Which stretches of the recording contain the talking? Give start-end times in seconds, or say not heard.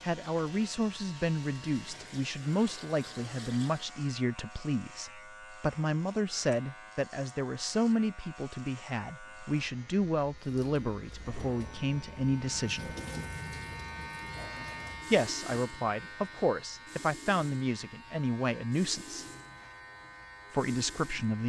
0.0-12.9, 15.1-19.2, 20.5-21.4.